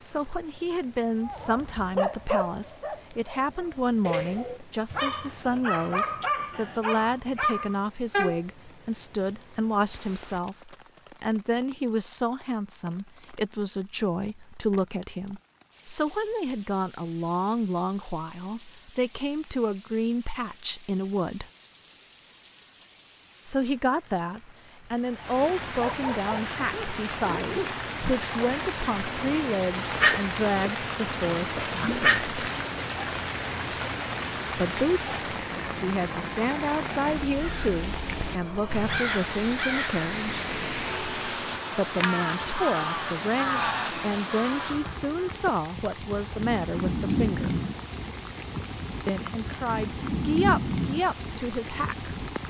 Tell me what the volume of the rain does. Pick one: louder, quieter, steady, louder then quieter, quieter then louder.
louder.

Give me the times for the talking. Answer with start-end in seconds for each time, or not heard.
0.0-21.4, 23.4-32.2, 34.5-40.5, 41.8-47.6, 49.0-52.1.